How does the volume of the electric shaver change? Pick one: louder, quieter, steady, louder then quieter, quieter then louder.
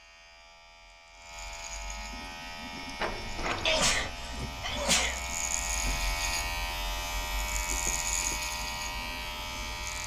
louder.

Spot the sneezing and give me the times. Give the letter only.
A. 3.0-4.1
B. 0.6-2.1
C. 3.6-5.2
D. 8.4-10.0
C.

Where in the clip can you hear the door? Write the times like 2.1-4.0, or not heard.
3.0-4.1.